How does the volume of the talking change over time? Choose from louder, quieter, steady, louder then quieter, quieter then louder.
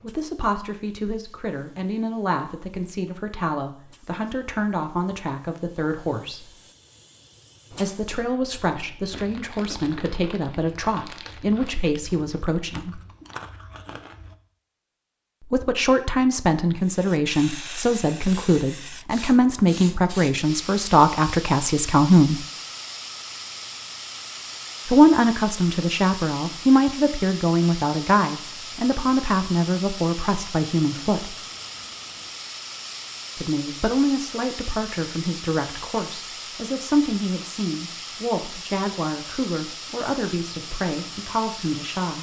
louder then quieter.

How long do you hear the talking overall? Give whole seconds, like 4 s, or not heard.
34 s.